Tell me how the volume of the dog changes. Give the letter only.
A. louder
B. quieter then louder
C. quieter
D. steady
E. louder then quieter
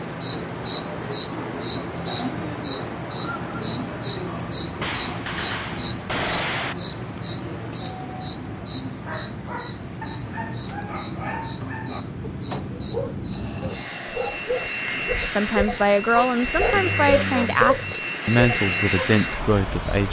A.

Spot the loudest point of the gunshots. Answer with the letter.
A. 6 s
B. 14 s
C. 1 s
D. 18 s
A.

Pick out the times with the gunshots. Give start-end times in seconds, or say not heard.
4.8-6.8.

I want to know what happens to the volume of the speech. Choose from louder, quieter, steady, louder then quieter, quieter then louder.
steady.